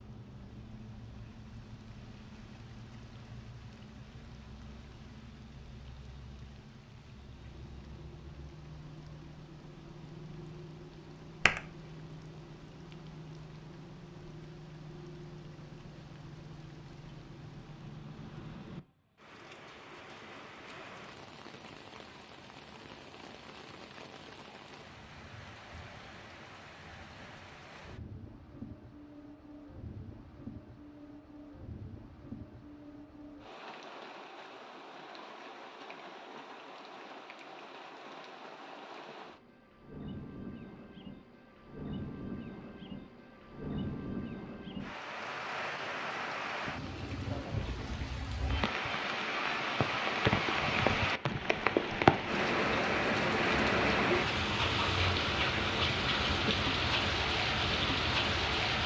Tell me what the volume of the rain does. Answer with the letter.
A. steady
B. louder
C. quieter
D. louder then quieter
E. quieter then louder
B.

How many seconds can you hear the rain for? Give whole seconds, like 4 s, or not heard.
59 s.